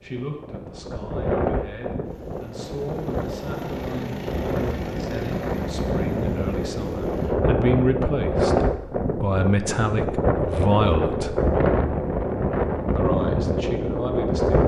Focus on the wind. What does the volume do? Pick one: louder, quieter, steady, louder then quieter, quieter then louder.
louder.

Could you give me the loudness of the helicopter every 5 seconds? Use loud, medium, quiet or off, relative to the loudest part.
loud, loud, off.